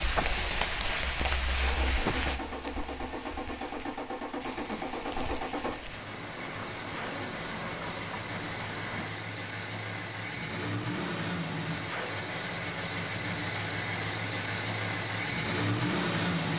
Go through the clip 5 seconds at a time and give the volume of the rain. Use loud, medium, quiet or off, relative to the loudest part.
loud, medium, off, off.